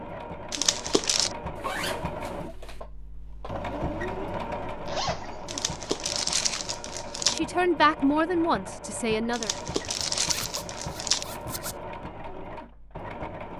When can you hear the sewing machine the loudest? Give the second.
4 s.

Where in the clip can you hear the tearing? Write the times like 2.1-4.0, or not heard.
0.5-1.4, 5.5-7.4, 9.3-11.2.